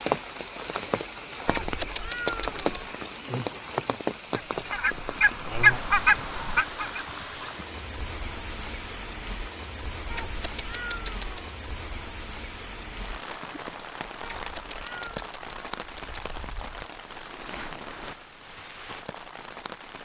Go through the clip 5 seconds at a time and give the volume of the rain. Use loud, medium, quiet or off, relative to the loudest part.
loud, medium, medium, medium.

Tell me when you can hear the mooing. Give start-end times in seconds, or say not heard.
not heard.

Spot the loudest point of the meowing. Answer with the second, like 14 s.
2 s.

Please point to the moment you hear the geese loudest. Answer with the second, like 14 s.
6 s.